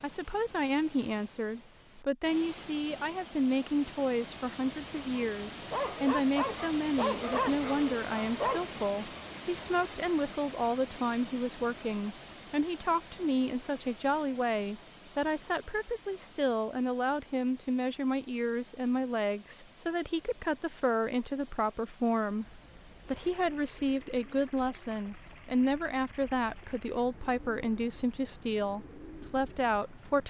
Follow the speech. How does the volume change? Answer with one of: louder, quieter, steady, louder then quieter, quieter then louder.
steady.